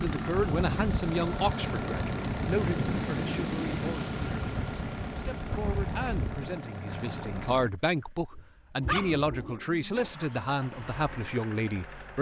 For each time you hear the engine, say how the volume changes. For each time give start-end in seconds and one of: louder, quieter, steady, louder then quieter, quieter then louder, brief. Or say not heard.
0.0-12.1 quieter.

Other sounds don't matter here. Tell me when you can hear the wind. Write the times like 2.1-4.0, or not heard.
0.0-6.5.